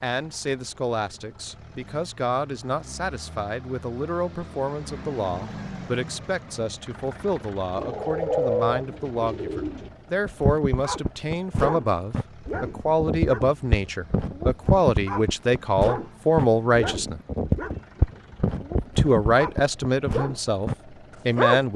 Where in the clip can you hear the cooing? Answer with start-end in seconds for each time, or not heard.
7.8-9.9.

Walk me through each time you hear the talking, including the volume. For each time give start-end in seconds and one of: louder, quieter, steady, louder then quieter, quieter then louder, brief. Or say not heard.
0.0-17.2 louder
18.9-21.7 brief.